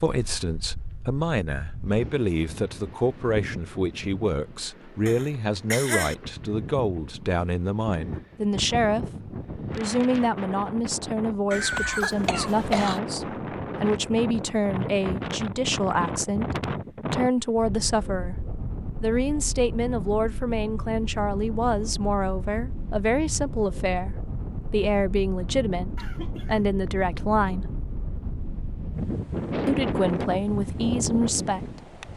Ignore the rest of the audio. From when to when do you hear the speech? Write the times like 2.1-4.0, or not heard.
0.0-18.4, 19.0-27.7, 29.6-32.0.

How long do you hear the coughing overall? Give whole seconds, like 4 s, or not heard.
3 s.